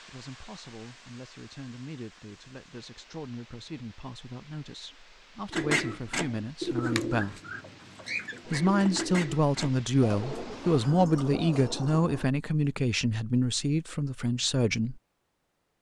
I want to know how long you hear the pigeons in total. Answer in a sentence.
The pigeons can be heard for 7 seconds in total.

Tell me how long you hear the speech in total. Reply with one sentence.
The speech can be heard for 14 seconds in total.